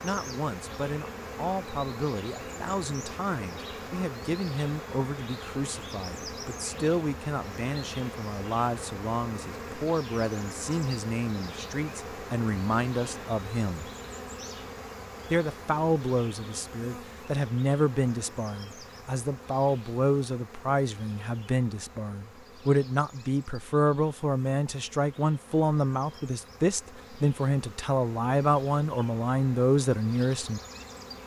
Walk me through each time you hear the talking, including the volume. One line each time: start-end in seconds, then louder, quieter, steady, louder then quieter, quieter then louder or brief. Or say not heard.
0.0-13.9 steady
15.3-30.6 steady.